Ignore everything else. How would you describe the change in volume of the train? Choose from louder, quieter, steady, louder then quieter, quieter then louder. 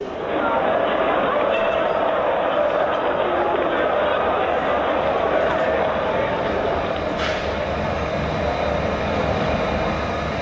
louder.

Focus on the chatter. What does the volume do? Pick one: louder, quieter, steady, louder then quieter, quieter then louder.
quieter.